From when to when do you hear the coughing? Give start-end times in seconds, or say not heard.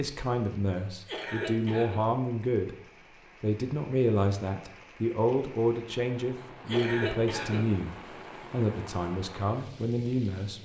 0.8-2.0, 6.4-7.7.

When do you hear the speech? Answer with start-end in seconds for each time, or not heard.
0.0-2.8, 3.4-10.5.